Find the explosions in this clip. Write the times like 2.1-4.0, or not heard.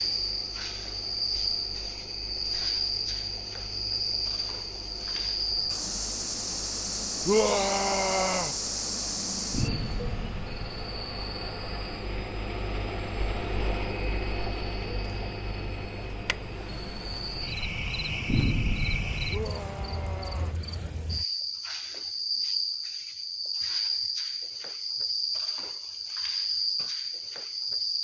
9.5-10.7, 18.2-19.4.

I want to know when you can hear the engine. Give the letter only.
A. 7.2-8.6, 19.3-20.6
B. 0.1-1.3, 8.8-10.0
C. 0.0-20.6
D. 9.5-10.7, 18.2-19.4
C.